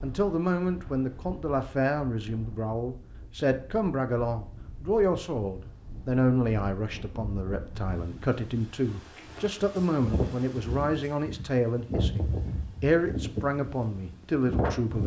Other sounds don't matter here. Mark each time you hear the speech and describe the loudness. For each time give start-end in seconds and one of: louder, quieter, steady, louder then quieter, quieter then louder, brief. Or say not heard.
0.0-15.0 steady.